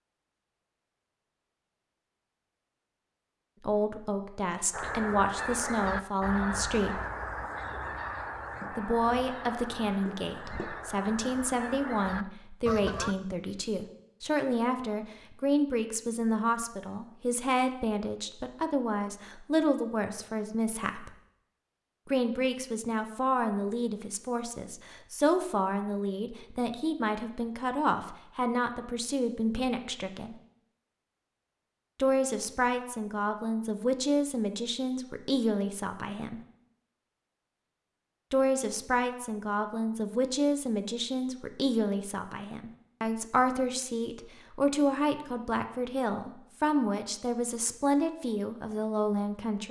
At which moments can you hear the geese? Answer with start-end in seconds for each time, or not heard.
4.7-13.2.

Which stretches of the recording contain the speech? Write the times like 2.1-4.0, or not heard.
3.6-7.0, 8.8-21.1, 22.1-30.4, 31.9-36.4, 38.3-49.6.